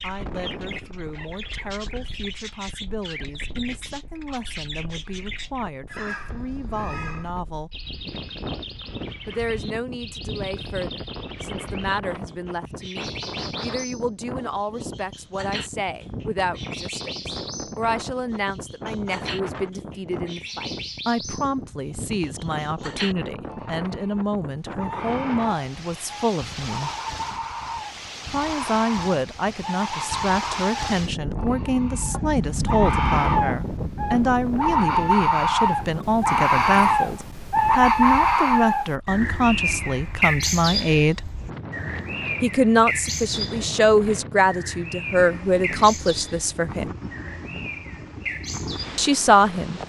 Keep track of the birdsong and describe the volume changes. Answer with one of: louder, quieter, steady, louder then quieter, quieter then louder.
louder then quieter.